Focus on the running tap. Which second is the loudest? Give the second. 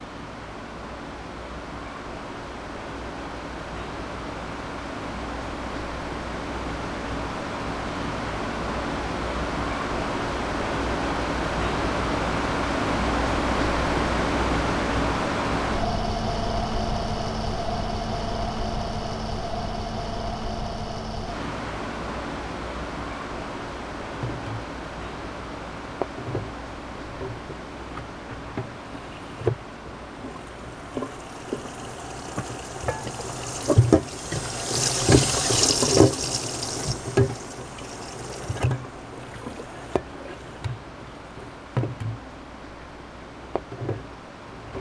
36 s.